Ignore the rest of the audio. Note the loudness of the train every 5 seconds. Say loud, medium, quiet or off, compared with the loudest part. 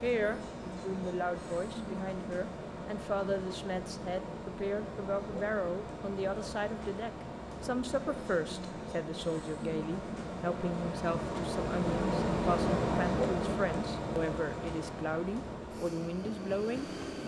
medium, medium, loud, medium.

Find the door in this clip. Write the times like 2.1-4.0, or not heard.
not heard.